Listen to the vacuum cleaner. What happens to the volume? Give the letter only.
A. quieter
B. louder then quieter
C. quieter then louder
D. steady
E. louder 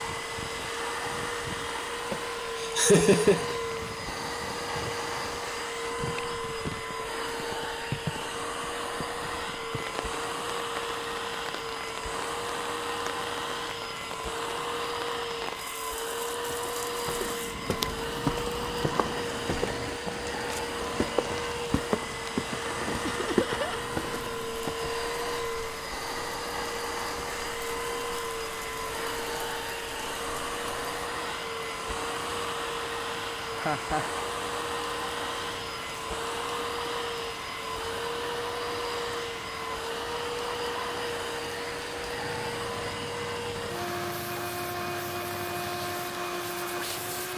D.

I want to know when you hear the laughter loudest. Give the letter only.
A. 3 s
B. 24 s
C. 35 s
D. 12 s
A.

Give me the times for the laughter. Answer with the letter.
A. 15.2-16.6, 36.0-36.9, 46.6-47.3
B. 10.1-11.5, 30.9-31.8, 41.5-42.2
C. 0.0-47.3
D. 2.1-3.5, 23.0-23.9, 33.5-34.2
D.